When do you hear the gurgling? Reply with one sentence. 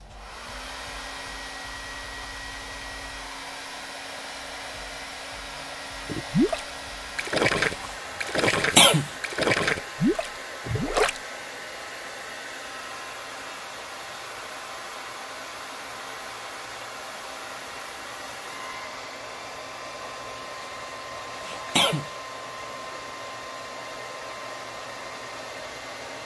The gurgling can be heard from 6.0 to 11.2 s.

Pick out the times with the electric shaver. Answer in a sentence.
You can't hear the electric shaver here.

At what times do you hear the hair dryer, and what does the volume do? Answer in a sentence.
You can hear the hair dryer from 0.0 to 26.2 s, at a steady volume.